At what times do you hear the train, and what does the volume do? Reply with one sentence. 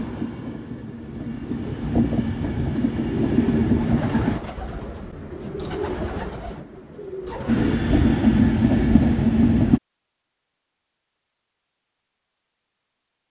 The train can be heard from 0.0 to 4.4 s, getting louder; and briefly from 7.5 to 9.8 s.